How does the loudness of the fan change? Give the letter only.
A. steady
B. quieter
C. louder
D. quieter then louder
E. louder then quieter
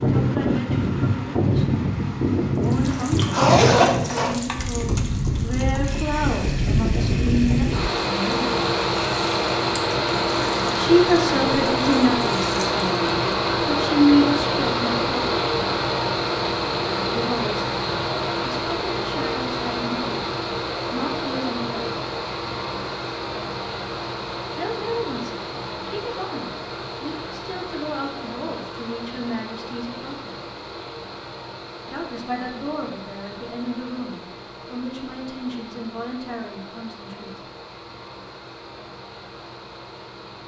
B.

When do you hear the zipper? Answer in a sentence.
The zipper can be heard from 2.9 to 4.3 s.